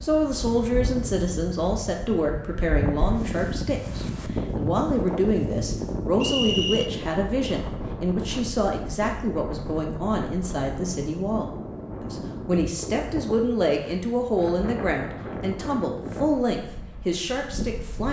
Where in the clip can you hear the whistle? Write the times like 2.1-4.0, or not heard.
6.2-6.9.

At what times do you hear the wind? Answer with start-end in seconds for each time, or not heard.
0.0-18.0.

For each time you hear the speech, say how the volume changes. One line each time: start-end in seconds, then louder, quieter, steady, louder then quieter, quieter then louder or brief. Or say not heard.
0.0-18.0 steady.